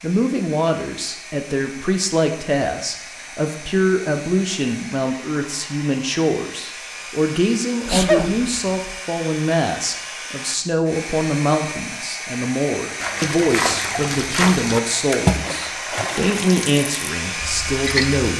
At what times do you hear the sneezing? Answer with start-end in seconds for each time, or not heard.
7.8-8.7.